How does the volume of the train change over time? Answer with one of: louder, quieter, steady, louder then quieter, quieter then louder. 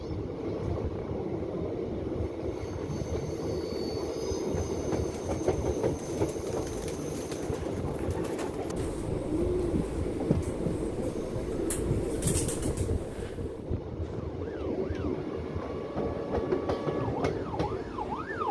steady.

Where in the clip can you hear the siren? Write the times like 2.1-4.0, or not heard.
14.0-18.4.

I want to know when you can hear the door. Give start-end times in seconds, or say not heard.
not heard.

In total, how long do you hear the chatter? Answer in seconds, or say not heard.
not heard.